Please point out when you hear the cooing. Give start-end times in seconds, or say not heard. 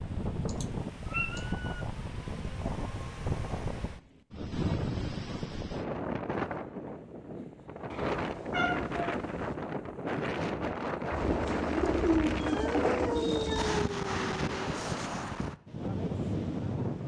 11.1-13.8.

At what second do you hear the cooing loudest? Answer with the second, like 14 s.
12 s.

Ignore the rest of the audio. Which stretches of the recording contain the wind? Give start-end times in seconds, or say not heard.
0.0-17.0.